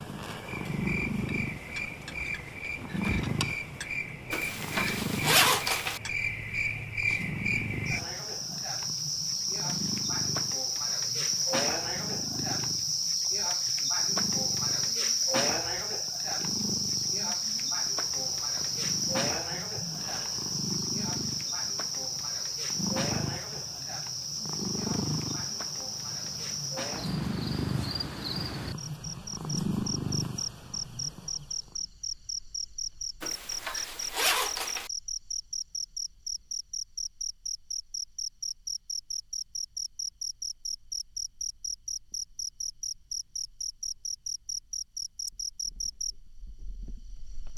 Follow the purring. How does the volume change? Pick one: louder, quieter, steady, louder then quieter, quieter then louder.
quieter then louder.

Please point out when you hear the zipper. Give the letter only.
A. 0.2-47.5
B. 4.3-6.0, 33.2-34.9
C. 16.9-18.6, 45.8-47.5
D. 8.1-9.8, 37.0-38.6
B.